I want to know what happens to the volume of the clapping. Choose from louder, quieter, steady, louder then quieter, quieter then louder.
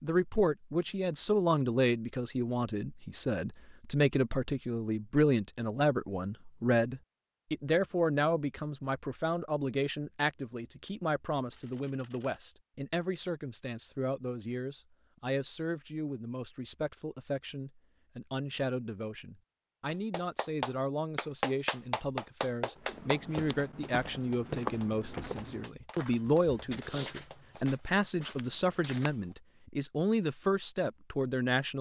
quieter.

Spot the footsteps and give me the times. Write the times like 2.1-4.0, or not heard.
22.8-29.2.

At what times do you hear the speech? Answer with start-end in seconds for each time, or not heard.
0.0-31.7.